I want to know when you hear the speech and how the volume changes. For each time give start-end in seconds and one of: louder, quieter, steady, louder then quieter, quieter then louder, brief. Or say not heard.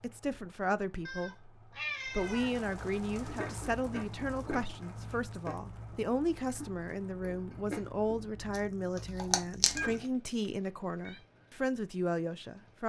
0.0-12.8 steady.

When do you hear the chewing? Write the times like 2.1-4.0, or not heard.
3.1-9.9.